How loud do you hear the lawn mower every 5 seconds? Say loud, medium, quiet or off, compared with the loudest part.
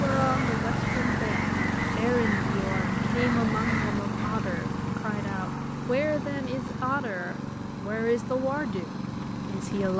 loud, medium.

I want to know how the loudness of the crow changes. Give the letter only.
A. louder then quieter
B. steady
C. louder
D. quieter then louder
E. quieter
B.